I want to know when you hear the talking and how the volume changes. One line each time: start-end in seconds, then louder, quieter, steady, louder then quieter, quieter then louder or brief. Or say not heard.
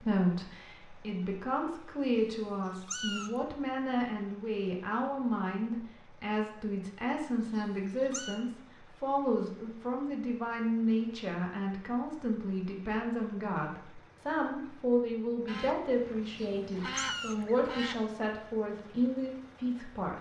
0.0-20.1 steady.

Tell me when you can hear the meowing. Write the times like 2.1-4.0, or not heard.
2.1-3.4, 7.4-8.4, 16.2-17.4.